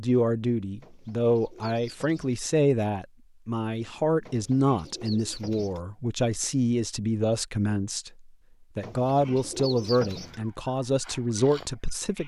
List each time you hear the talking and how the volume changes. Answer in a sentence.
The talking can be heard from 0.0 to 12.2 s, at a steady volume.